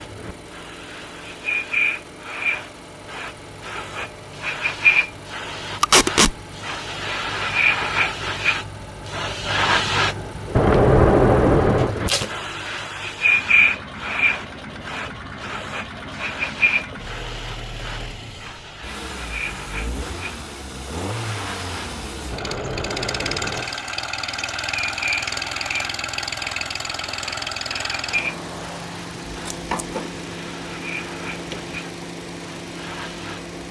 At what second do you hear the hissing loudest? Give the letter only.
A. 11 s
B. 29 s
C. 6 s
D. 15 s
A.